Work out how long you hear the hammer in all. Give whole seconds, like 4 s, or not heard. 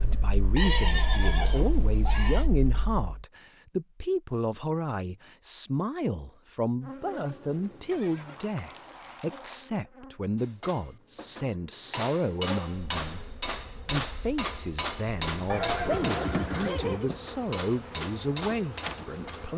9 s.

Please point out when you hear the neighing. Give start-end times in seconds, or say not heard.
0.6-2.5, 7.9-9.6, 15.4-17.1.